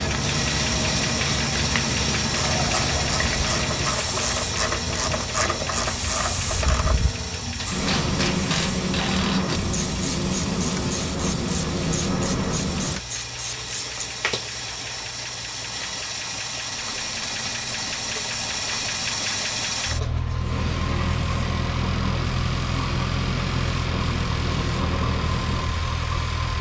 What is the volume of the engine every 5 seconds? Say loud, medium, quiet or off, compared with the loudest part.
loud, medium, medium, loud, loud, loud.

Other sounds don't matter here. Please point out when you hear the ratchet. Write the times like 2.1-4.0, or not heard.
2.2-14.0.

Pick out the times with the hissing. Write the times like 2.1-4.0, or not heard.
0.0-26.5.